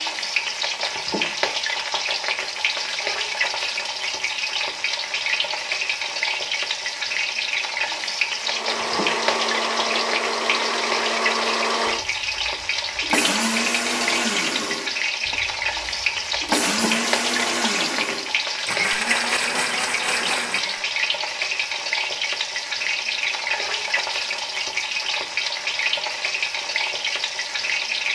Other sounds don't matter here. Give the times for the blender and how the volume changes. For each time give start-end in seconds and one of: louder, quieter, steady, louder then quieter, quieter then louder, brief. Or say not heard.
8.4-20.9 steady.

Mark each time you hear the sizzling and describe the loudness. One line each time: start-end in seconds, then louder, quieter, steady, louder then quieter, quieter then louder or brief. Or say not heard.
0.0-28.0 steady.